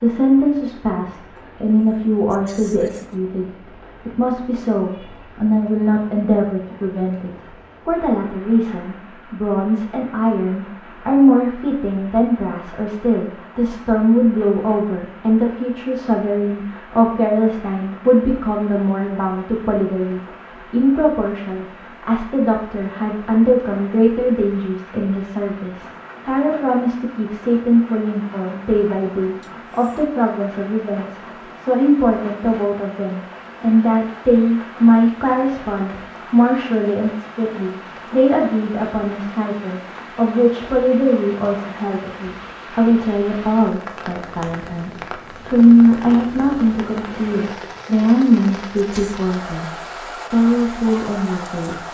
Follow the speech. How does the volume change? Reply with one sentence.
The volume of the speech stays about the same.